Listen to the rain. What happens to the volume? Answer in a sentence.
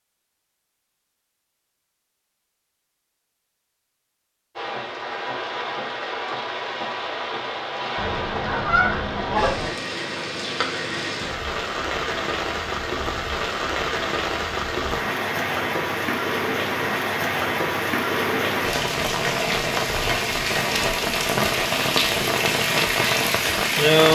The volume of the rain goes up.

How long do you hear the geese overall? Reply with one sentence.
You can hear the geese for 2 seconds altogether.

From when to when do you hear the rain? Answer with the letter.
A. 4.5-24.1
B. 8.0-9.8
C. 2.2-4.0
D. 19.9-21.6
A.